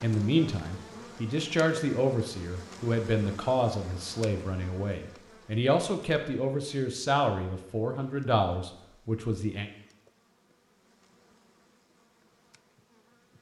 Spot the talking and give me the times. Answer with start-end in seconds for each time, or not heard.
0.0-9.7.